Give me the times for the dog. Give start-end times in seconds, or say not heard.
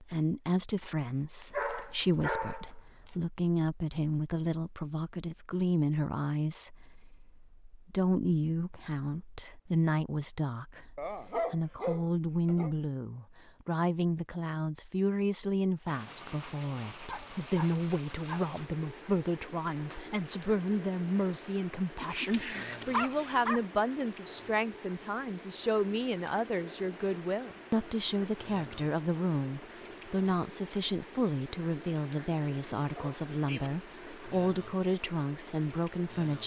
1.4-3.1, 10.9-12.7, 17.1-18.6, 21.9-23.7, 33.0-33.7.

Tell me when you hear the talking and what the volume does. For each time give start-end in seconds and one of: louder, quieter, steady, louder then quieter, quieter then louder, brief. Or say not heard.
0.0-36.4 steady.